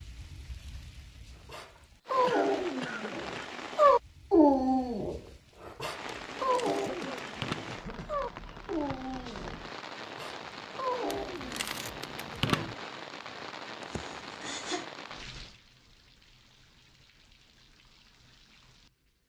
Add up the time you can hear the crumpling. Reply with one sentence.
The crumpling can be heard for 3 seconds in total.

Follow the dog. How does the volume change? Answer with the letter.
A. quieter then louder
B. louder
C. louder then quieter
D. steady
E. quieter
C.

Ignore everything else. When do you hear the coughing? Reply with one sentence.
You can hear the coughing from 2.2 to 3.5 s, from 6.7 to 8.2 s and from 13.8 to 14.8 s.